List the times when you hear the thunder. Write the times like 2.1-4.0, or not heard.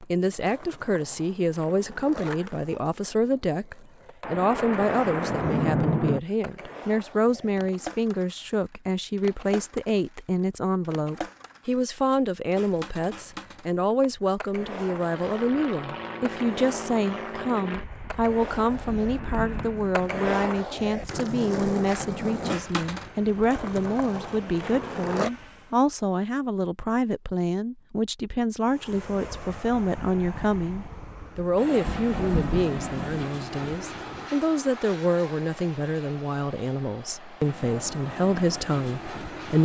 4.2-6.2, 18.9-20.2, 31.8-33.2.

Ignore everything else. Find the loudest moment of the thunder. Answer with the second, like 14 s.
6 s.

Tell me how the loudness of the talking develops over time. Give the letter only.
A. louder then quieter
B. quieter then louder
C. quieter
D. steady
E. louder
D.